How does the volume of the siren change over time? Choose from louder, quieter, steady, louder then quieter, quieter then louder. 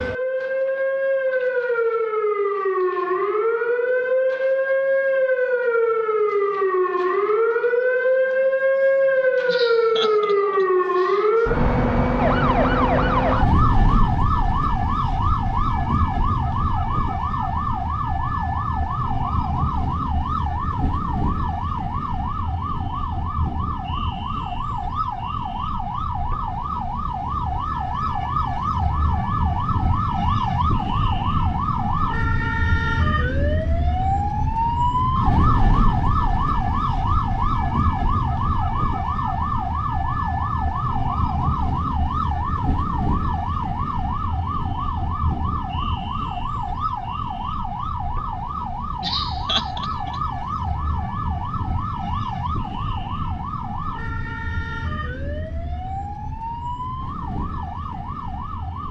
quieter.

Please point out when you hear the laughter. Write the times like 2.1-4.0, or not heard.
9.4-11.3, 49.0-50.2.